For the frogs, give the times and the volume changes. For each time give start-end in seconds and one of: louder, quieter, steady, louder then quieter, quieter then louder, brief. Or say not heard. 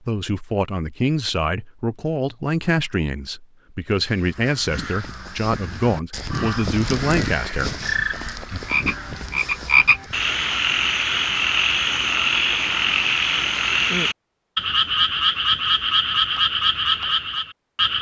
7.8-17.9 steady.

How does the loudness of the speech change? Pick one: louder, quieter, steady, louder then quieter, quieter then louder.
steady.